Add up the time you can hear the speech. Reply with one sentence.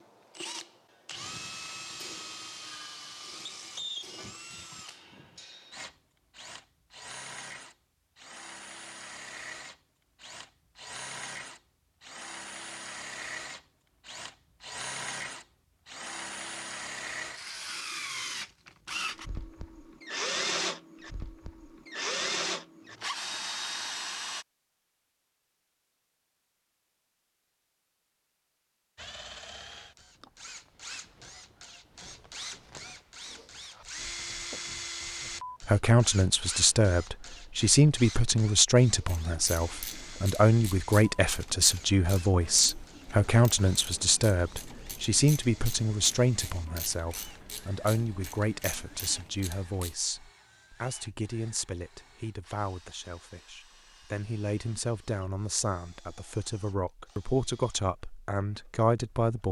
The speech can be heard for 24 seconds in total.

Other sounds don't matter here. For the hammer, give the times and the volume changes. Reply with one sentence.
The hammer can't be heard in this clip.